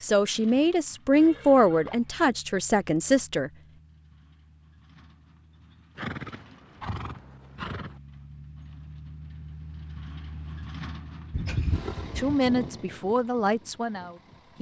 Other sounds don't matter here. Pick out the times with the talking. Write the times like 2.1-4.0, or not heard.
0.0-3.5, 12.2-14.5.